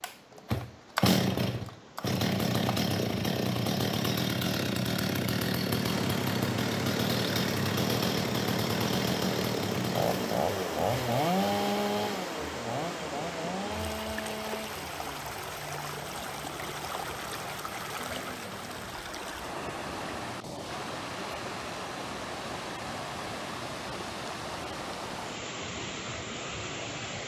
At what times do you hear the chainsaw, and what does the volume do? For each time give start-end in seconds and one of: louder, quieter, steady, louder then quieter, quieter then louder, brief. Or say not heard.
0.0-27.2 quieter.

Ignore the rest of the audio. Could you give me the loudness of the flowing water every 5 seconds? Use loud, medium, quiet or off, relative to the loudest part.
quiet, loud, loud, loud, loud, loud.